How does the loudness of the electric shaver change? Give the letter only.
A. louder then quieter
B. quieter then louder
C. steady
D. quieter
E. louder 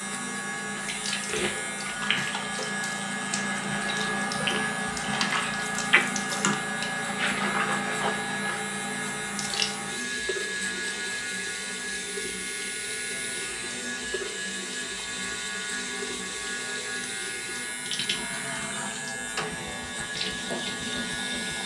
C.